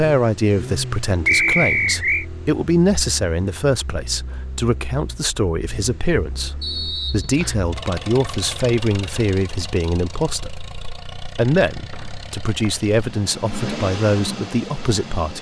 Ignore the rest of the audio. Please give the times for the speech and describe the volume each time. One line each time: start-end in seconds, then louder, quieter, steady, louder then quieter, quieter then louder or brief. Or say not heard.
0.0-15.3 steady.